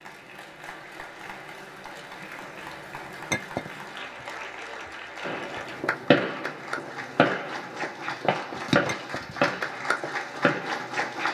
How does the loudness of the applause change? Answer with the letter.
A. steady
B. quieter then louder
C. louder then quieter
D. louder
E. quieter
D.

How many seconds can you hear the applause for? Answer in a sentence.
The applause can be heard for 11 seconds in total.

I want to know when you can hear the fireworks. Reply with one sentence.
You can hear the fireworks from 5.2 to 11.2 s.